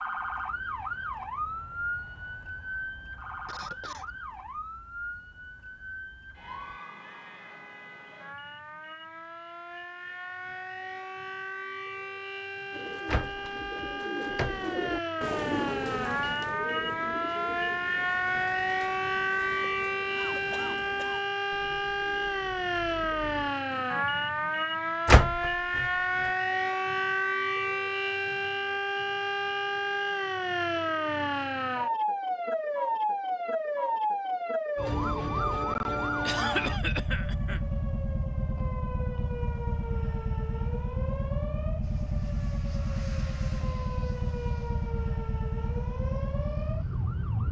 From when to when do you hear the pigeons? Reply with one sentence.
The pigeons can be heard from 12.7 to 24.0 s.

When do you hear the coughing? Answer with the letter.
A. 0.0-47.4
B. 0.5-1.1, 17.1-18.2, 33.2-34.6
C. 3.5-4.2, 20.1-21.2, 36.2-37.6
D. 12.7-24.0
C.